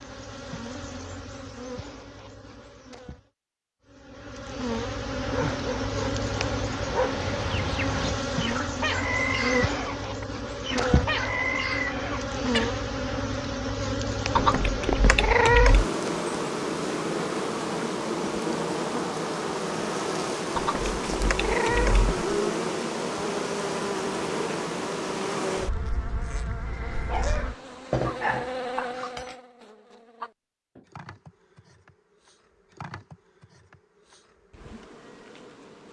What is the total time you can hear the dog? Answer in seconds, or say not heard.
5 s.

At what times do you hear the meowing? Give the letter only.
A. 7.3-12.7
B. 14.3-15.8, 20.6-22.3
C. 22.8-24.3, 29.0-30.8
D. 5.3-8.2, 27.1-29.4
B.